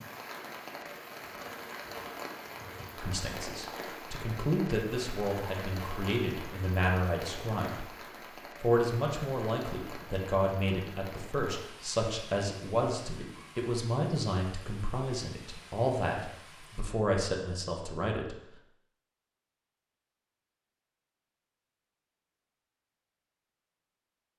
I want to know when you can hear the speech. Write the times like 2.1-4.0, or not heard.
3.0-7.9, 8.6-18.4.